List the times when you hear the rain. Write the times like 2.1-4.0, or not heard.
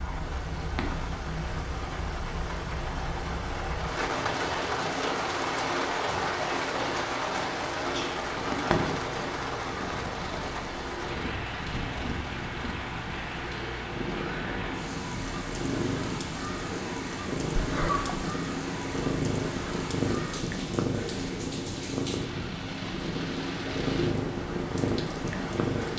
0.0-25.9.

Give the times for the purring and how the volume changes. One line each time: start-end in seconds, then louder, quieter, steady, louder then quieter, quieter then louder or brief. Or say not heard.
0.0-25.9 louder.